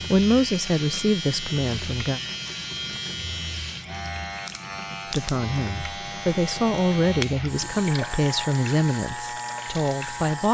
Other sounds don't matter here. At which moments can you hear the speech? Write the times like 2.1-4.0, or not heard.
0.0-2.2, 5.1-10.4.